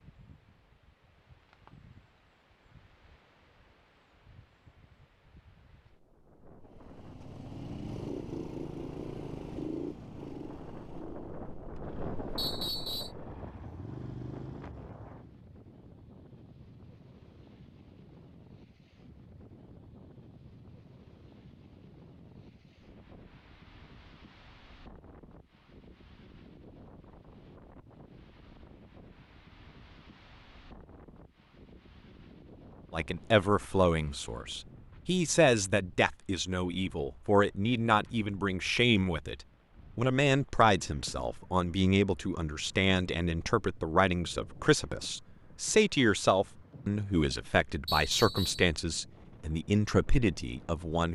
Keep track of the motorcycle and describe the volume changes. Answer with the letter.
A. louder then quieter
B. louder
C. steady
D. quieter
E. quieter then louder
E.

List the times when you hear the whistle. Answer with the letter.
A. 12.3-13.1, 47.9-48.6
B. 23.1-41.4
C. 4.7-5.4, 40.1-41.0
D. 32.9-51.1
A.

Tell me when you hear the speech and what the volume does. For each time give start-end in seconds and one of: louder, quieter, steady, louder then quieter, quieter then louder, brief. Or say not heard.
32.9-51.1 steady.